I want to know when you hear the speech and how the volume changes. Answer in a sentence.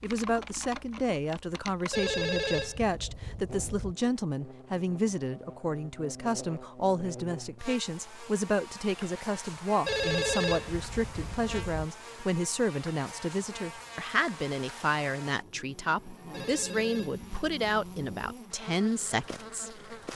You can hear the speech from 0.0 to 19.8 s, at a steady volume.